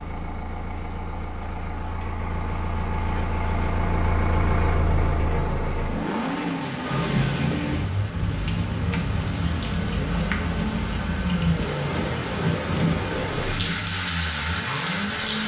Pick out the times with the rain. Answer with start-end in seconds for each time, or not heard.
6.7-15.4.